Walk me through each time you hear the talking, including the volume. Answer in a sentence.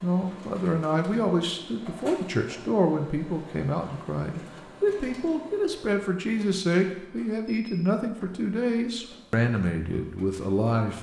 You can hear the talking from 0.0 to 10.9 s, at a steady volume.